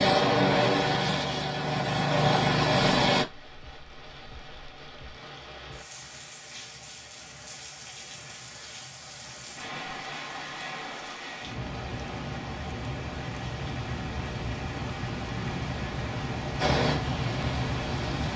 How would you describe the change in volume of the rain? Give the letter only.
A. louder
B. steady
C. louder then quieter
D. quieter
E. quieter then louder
A.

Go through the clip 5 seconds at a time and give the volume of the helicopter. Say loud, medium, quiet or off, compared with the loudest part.
loud, off, off, medium.